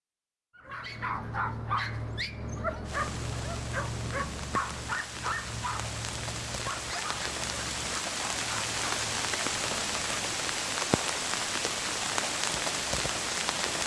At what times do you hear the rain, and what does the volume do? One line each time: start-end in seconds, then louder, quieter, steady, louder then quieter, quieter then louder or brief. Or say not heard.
2.9-13.8 louder.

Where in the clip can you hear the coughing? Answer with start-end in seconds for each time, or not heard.
not heard.